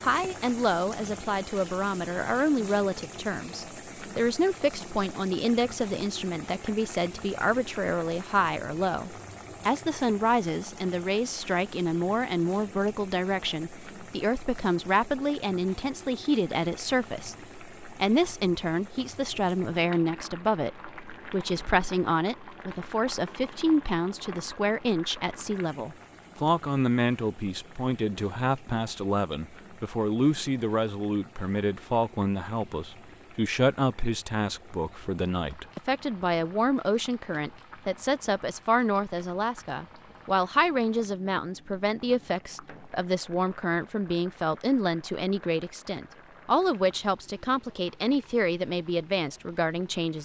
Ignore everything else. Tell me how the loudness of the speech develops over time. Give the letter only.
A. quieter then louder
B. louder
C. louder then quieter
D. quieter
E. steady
E.